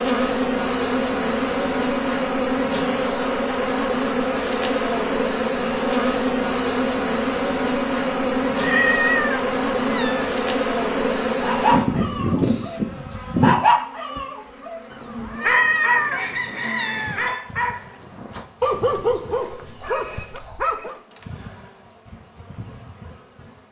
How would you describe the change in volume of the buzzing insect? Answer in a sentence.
The loudness of the buzzing insect goes down.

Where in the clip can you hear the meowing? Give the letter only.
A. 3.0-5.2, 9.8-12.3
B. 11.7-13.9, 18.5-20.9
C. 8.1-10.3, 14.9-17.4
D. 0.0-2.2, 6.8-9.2
C.